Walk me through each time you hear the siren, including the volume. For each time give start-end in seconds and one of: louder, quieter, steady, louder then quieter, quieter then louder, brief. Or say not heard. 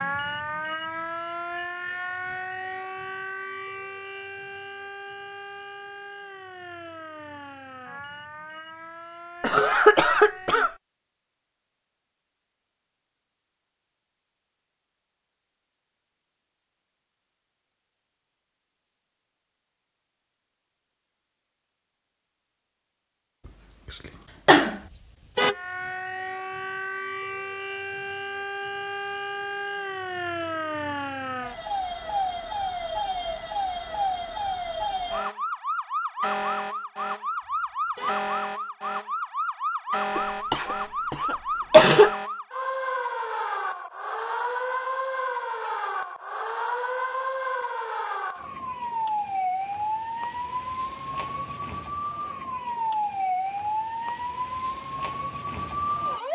0.0-10.8 quieter
25.4-56.3 steady.